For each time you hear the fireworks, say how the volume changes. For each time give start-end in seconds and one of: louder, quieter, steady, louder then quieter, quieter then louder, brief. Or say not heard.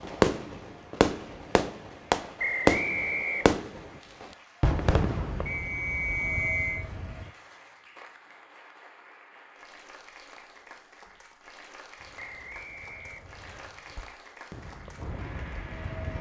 0.0-7.3 louder then quieter
12.0-16.1 louder.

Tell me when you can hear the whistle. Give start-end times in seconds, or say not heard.
2.4-3.5, 5.5-6.8, 12.2-13.7.